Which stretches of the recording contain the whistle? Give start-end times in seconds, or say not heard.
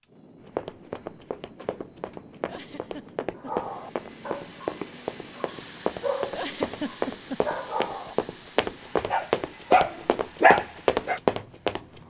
not heard.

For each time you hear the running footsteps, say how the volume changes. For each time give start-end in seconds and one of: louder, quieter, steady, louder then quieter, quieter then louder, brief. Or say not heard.
0.5-12.0 louder.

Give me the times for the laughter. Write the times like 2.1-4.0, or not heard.
2.5-3.6, 6.3-7.5.